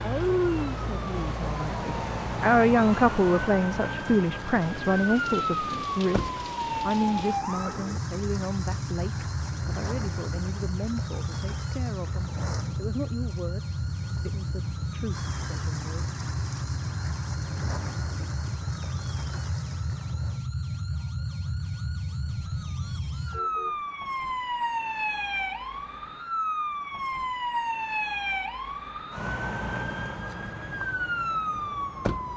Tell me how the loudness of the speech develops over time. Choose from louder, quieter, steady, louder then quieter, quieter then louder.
quieter.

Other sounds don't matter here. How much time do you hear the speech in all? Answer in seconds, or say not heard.
16 s.